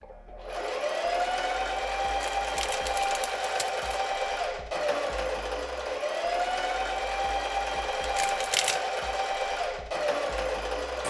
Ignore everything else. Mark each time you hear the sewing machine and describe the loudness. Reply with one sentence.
You can hear the sewing machine from 0.0 to 11.0 s, at a steady volume.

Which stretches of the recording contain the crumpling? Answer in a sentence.
You can hear the crumpling from 2.0 to 3.9 s and from 8.0 to 8.8 s.